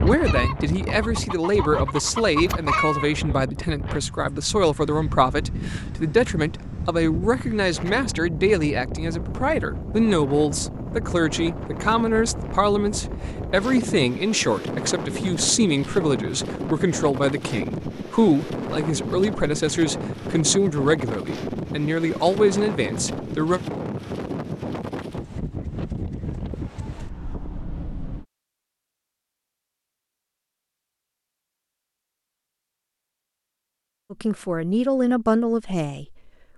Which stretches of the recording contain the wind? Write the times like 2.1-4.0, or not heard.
0.0-28.2.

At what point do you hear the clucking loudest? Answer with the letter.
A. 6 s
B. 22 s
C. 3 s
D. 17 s
C.